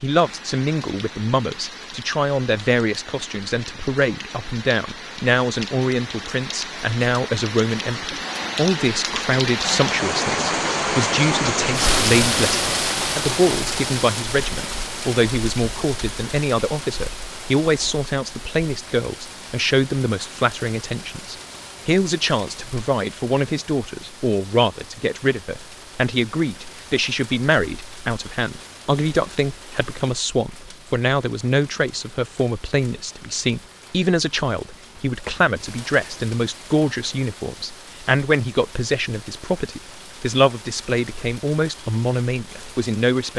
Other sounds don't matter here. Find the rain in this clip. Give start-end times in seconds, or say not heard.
0.0-43.3.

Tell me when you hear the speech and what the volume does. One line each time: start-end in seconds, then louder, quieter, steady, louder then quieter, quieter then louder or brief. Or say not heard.
0.0-43.3 steady.